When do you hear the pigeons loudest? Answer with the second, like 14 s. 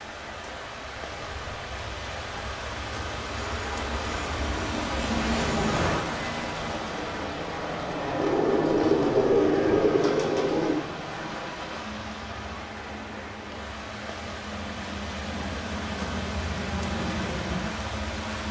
9 s.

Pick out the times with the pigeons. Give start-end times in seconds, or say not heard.
8.2-10.8.